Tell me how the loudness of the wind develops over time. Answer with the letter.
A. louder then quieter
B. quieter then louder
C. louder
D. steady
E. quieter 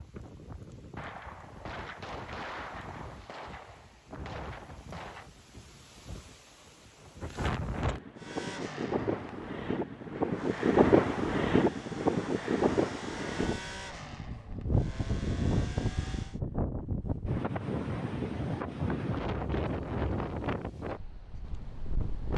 A.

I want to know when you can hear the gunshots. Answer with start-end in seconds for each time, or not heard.
0.9-5.3.